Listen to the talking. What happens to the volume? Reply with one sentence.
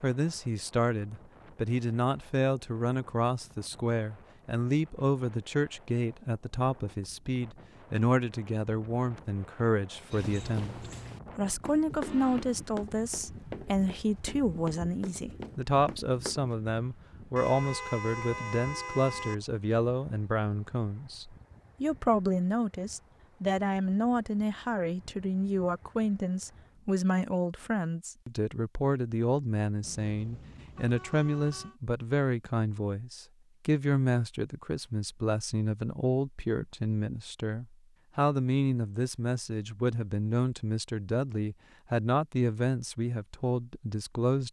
The volume of the talking stays about the same.